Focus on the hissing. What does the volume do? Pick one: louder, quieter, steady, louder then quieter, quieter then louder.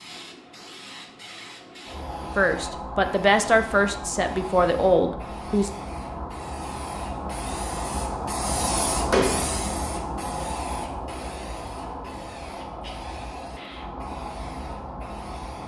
louder then quieter.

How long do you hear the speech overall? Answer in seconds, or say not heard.
3 s.